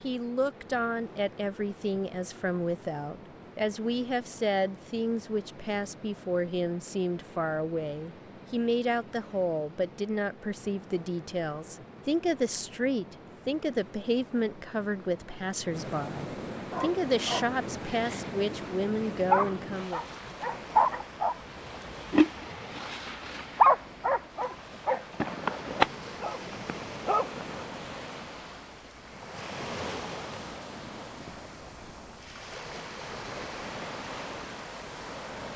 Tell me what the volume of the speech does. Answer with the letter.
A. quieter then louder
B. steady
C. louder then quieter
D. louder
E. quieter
B.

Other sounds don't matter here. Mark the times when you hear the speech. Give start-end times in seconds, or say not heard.
0.0-20.0.